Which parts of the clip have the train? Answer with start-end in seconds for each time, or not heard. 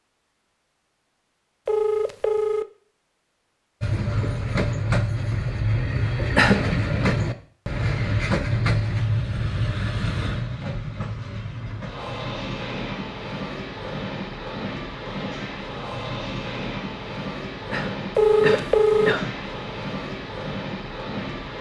3.8-21.5.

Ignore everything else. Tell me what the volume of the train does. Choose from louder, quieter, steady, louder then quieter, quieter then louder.
quieter.